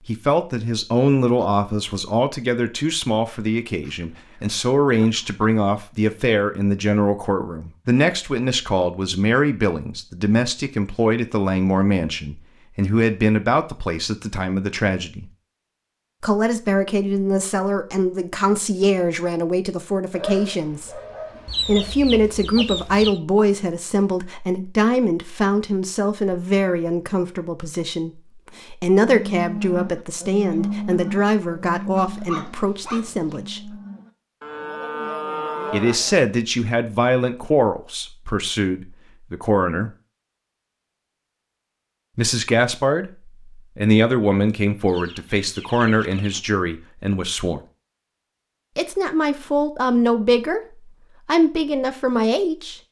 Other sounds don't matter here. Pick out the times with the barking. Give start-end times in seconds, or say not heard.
20.1-21.9, 31.9-33.4.